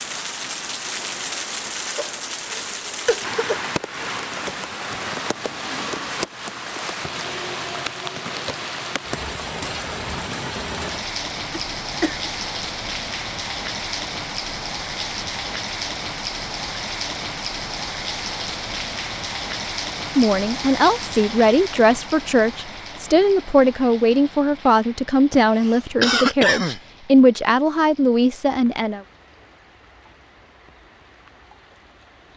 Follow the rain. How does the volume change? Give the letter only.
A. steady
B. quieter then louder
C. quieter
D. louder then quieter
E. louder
C.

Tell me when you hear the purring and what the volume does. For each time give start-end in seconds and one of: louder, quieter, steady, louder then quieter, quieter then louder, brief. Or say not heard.
not heard.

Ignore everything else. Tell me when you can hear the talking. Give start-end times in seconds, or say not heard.
20.1-29.0.